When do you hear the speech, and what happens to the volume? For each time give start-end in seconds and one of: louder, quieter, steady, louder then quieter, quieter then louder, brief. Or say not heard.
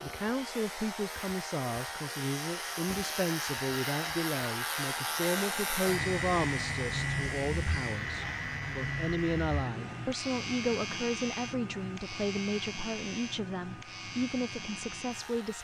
0.0-15.5 steady.